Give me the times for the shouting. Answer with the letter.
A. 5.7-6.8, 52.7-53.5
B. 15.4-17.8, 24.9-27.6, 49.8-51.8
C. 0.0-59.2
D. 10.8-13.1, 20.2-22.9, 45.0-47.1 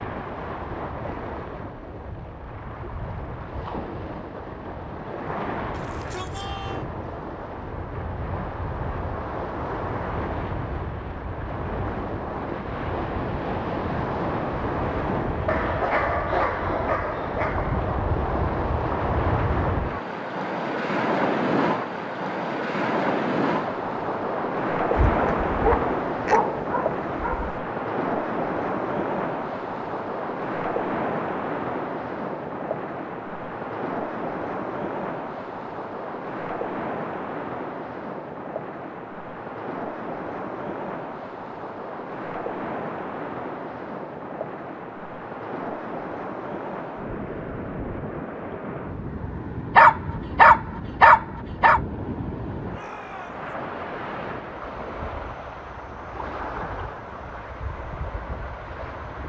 A.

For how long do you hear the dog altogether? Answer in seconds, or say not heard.
7 s.